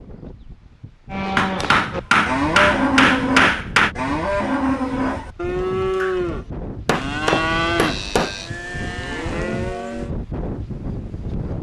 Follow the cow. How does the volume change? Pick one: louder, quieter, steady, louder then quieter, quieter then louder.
quieter.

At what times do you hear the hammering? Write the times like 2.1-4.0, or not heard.
1.4-4.0, 6.8-8.4.